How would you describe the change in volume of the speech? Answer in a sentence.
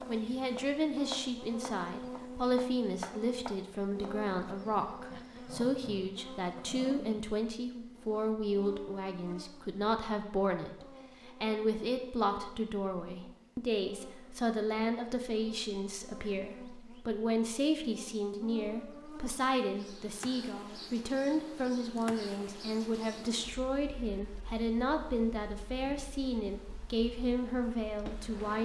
The loudness of the speech stays about the same.